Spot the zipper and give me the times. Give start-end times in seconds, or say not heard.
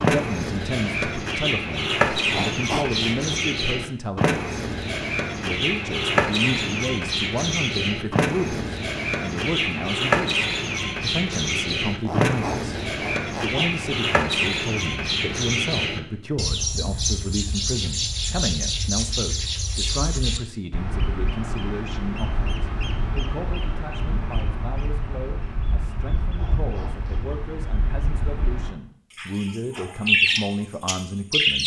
2.1-3.4, 11.8-13.7, 26.2-27.4.